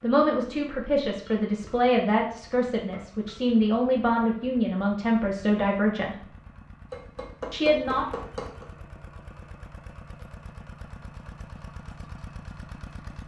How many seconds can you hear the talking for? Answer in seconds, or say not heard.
7 s.